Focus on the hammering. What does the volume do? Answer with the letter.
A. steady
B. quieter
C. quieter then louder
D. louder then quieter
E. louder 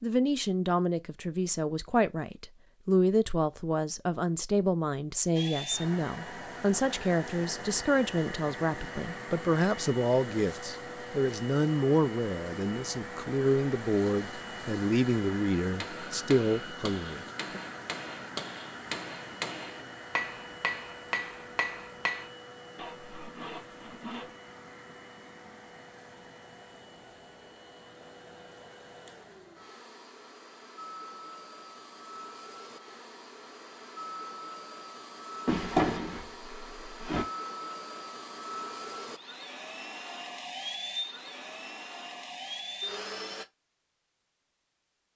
E.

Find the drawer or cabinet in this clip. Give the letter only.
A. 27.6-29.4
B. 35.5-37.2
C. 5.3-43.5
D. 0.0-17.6
B.